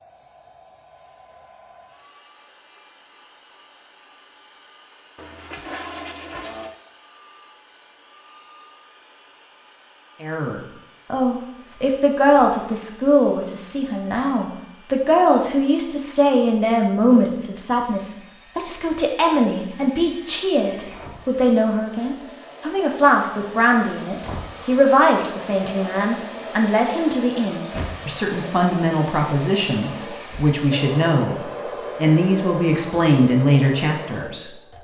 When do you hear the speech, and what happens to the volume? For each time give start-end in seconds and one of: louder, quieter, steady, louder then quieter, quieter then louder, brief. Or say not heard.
10.2-34.7 steady.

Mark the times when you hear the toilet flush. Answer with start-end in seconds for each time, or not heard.
5.2-6.8.